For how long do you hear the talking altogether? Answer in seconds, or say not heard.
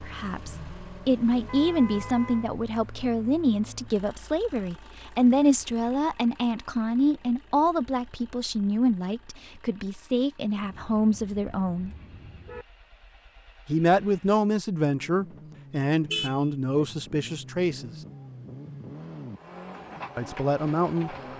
17 s.